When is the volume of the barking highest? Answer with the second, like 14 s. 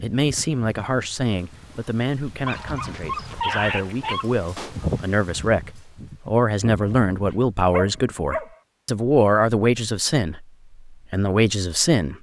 4 s.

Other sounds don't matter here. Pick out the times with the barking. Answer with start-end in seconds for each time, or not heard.
2.5-4.3, 6.8-8.6.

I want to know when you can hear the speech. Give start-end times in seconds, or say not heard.
0.0-12.1.